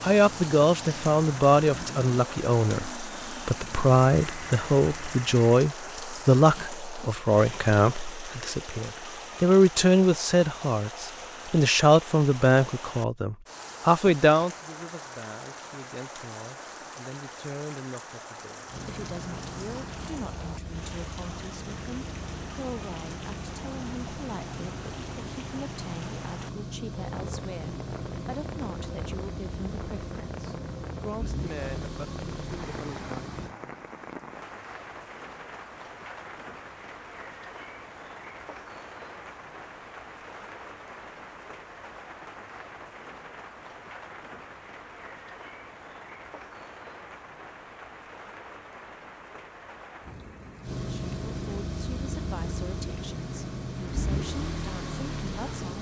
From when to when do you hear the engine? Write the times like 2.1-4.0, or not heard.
0.0-5.7, 18.6-33.5, 50.6-55.7.